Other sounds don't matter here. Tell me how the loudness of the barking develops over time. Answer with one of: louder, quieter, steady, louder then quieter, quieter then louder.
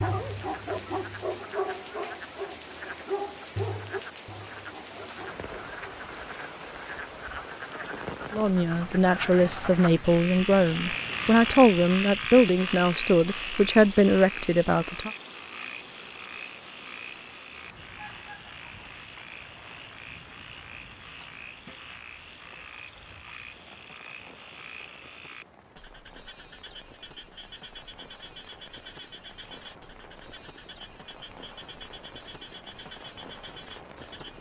quieter.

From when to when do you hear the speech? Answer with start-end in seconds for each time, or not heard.
8.3-15.1.